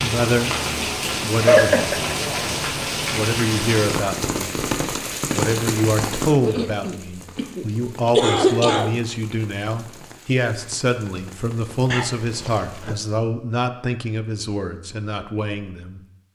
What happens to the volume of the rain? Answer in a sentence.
The loudness of the rain goes down.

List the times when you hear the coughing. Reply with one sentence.
The coughing can be heard from 1.4 to 2.1 s, from 6.4 to 9.0 s and from 11.9 to 12.9 s.